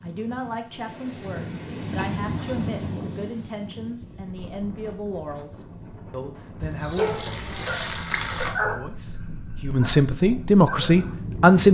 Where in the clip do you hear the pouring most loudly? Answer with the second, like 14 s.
8 s.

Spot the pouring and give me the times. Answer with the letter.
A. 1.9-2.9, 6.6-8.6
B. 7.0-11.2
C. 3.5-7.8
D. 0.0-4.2
A.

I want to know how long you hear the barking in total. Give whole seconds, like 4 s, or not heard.
4 s.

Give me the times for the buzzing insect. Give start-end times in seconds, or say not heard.
not heard.